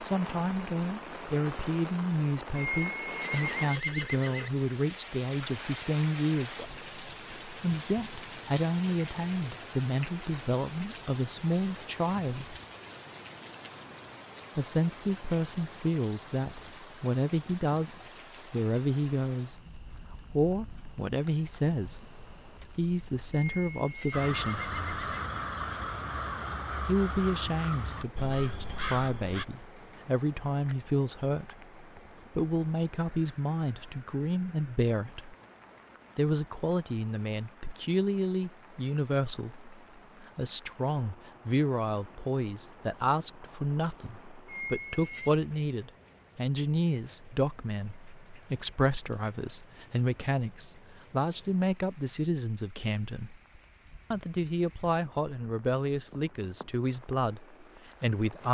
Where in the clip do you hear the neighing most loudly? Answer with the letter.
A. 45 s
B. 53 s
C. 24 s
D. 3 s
D.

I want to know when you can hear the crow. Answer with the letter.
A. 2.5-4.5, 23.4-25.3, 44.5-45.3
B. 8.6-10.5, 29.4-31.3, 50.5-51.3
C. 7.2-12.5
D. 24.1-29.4
D.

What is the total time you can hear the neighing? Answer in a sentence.
You can hear the neighing for 5 seconds altogether.